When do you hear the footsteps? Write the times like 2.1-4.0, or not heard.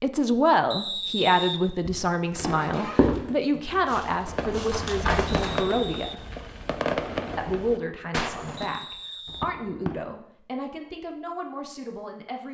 1.9-5.6.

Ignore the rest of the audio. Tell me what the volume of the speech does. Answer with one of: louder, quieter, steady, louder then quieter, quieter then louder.
quieter.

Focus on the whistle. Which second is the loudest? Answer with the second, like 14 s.
1 s.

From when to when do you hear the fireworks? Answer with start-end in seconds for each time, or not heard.
4.2-10.0.